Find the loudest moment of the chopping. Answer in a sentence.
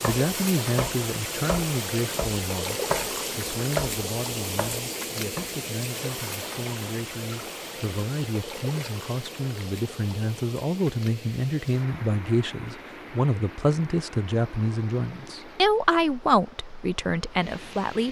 The loudest moment of the chopping is at 4 seconds.